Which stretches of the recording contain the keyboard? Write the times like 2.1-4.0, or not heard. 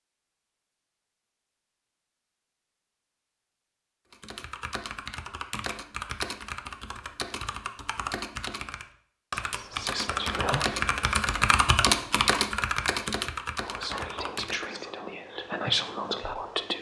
4.1-14.7.